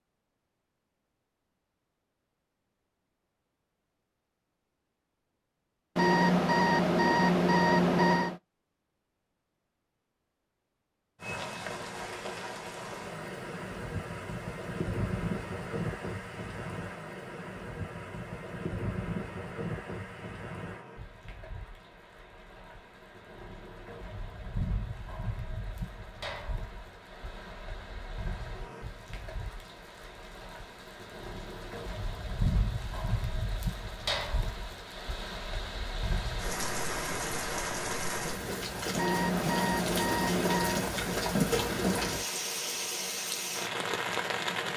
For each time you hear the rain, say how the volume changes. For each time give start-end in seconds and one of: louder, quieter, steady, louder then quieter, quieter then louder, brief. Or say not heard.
11.2-44.7 quieter then louder.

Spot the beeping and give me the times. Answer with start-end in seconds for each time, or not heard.
6.0-8.4, 39.0-40.9.